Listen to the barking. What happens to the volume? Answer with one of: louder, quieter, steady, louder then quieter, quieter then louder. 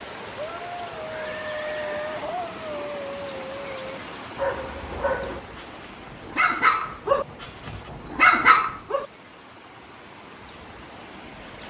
louder.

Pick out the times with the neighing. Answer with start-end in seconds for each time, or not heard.
1.1-2.3.